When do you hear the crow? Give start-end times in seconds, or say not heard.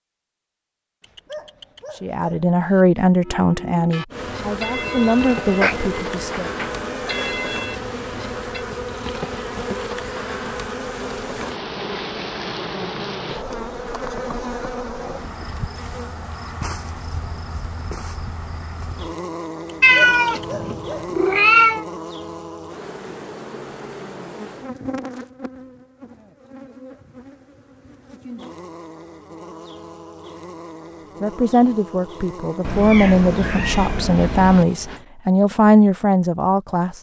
not heard.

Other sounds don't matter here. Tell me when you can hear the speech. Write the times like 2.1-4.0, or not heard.
2.0-6.5, 31.2-36.9.